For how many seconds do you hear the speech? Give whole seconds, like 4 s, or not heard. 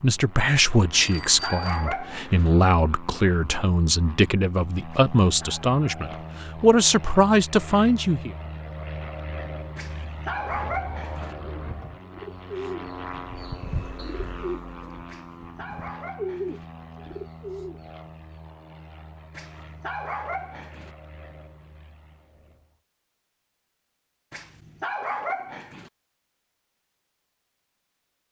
8 s.